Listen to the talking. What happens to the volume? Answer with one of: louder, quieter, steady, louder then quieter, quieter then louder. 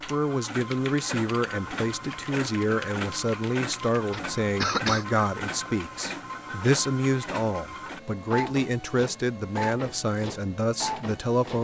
steady.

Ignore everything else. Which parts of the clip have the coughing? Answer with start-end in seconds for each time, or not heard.
4.1-5.0.